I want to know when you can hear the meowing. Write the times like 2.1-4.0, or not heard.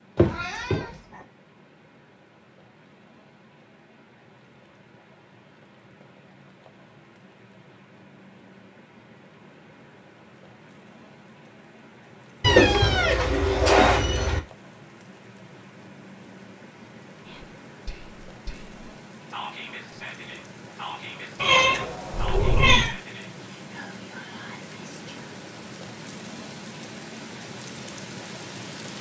0.1-0.9, 12.4-14.4, 21.4-22.9.